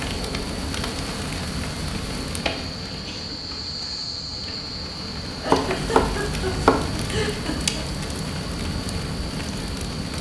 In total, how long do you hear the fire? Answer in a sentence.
The fire can be heard for 10 seconds in total.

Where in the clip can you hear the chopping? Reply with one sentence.
The chopping can be heard from 5.5 to 7.2 s.